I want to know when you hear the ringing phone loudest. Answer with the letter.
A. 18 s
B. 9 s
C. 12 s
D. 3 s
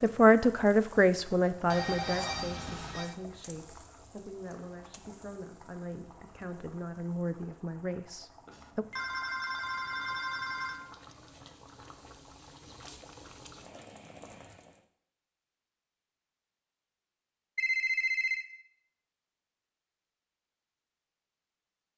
A.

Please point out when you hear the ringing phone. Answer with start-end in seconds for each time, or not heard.
1.7-3.1, 8.4-10.8, 17.6-18.4.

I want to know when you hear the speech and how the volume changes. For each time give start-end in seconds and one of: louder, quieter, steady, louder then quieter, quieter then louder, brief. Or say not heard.
0.0-8.8 quieter then louder.